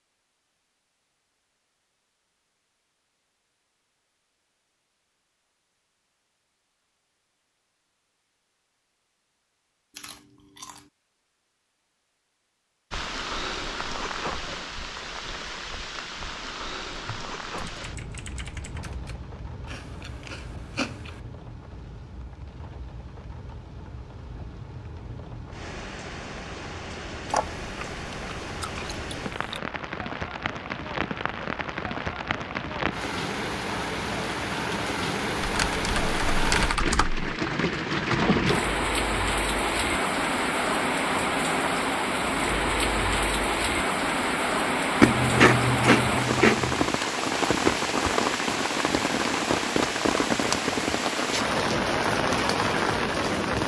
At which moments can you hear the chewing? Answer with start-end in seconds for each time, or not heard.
9.9-10.8, 19.6-21.2, 27.2-29.6, 45.0-46.9.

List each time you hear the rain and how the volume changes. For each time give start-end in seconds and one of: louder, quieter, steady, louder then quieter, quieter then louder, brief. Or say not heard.
12.9-53.6 louder.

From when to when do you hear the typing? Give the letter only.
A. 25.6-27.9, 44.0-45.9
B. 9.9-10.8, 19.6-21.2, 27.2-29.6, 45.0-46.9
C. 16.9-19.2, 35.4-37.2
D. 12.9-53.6
C.